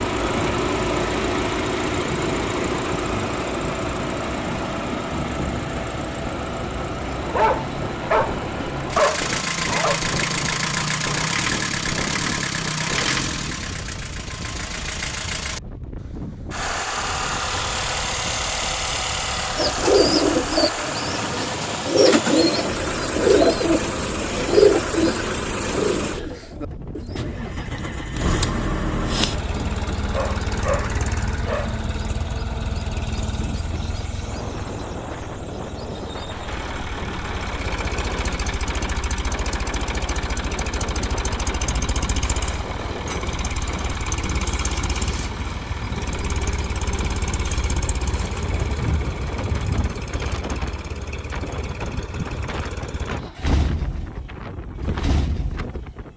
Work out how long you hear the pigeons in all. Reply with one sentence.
The pigeons can be heard for 8 seconds in total.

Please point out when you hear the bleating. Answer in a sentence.
You can't hear the bleating here.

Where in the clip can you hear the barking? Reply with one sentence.
The barking can be heard from 7.2 to 10.0 s and from 29.9 to 31.8 s.